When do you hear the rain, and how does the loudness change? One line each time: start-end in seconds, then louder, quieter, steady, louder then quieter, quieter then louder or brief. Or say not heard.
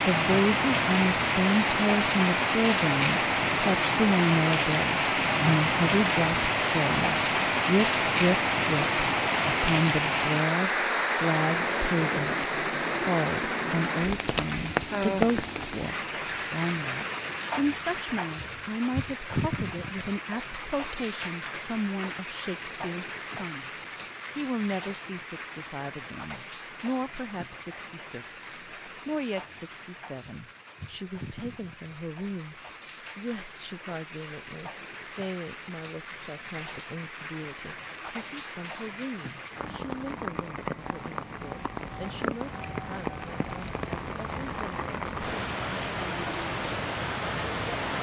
0.0-47.9 quieter then louder.